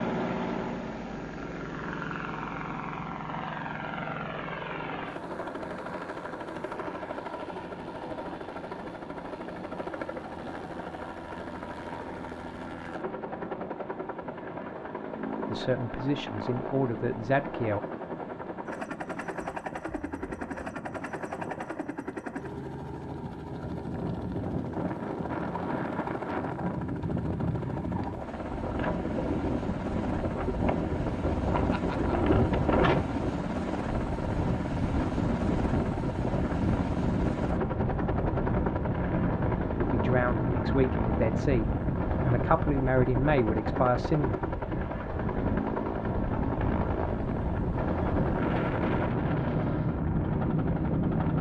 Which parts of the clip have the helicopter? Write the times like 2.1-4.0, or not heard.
0.0-51.3.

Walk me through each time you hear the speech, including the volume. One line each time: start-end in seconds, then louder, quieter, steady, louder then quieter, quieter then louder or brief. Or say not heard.
15.5-17.8 brief
39.8-44.4 quieter then louder.